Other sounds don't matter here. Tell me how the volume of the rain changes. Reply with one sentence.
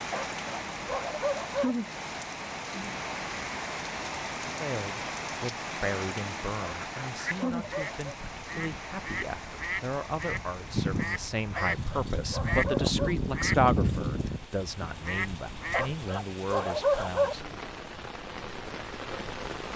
The loudness of the rain goes down, then up.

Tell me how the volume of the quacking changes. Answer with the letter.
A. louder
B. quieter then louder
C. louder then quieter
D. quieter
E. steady
C.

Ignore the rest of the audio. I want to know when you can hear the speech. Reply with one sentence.
You can hear the speech from 4.5 to 17.4 s.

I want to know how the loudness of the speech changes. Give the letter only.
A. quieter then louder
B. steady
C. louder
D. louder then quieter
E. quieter
D.